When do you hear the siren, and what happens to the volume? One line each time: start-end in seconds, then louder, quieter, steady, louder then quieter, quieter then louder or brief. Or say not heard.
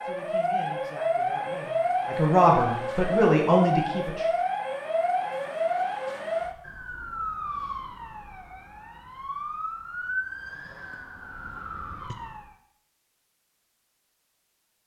0.0-12.6 quieter.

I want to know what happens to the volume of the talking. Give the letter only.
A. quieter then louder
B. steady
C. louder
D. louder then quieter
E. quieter
C.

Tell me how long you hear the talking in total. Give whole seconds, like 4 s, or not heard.
4 s.